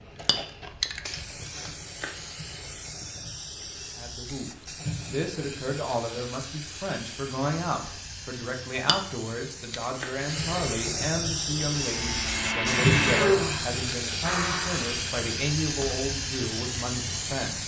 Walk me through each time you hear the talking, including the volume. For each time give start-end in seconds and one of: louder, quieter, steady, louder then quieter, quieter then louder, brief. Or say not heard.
4.0-17.6 steady.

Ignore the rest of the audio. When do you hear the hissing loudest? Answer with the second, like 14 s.
13 s.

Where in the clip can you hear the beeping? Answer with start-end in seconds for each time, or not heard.
not heard.